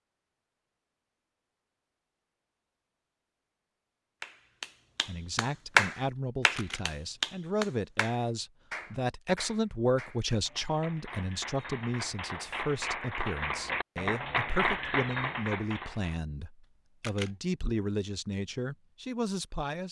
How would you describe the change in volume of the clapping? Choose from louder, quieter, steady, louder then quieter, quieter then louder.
quieter then louder.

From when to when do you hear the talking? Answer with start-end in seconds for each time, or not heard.
5.0-19.8.